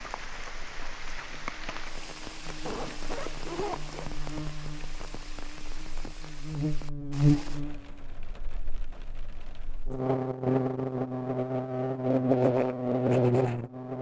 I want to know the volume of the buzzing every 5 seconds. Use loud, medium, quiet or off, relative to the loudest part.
quiet, medium, loud.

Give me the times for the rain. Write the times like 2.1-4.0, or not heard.
0.0-9.9.